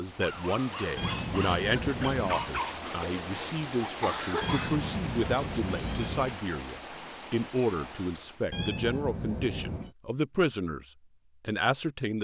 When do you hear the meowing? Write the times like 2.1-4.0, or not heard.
0.9-2.5, 4.4-6.3, 8.5-9.9.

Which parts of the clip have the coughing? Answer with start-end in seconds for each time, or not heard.
2.9-4.7.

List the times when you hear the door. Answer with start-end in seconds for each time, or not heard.
not heard.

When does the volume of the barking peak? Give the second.
2 s.